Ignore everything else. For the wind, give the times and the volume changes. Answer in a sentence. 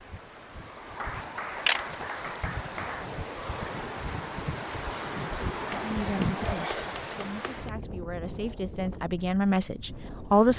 You can hear the wind from 0.0 to 10.5 s, getting louder then quieter.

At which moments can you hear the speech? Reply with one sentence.
You can hear the speech from 5.8 to 10.5 s.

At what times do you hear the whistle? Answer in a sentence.
The whistle can't be heard in this clip.